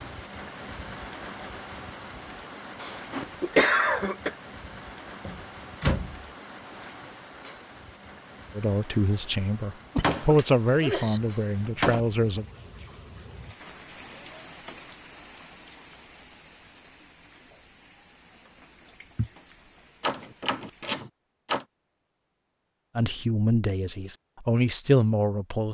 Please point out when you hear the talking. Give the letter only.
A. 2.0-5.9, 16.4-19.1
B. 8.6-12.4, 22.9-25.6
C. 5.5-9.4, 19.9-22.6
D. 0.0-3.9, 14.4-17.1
B.